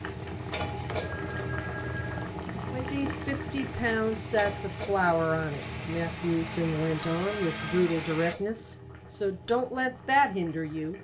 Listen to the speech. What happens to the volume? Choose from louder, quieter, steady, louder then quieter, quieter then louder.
steady.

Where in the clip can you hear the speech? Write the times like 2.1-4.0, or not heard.
2.7-10.9.